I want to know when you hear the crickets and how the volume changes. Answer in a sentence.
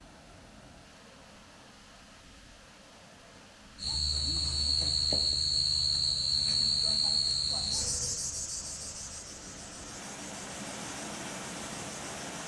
The crickets can be heard from 3.8 to 12.4 s, getting quieter.